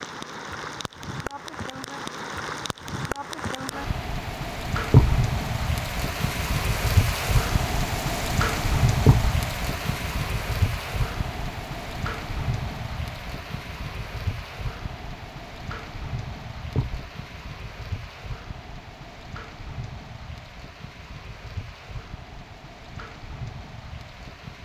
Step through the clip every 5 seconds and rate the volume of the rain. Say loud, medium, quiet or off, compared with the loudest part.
medium, loud, medium, quiet, quiet.